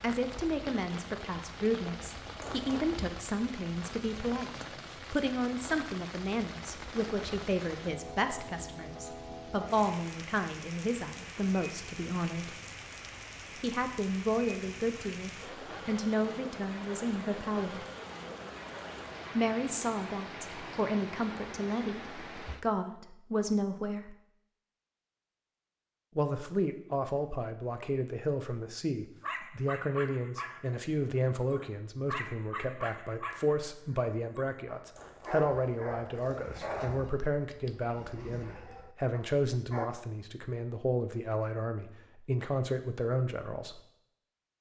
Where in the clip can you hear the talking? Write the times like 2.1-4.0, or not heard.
0.0-12.5, 13.6-17.9, 19.4-24.1, 26.1-43.8.